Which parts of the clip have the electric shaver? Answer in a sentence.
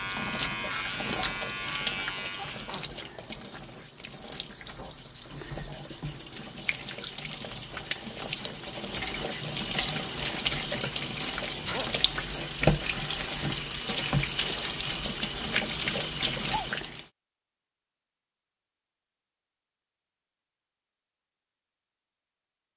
The electric shaver can be heard from 0.0 to 2.8 s.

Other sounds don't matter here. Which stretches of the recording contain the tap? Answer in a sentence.
The tap can be heard from 0.0 to 17.1 s.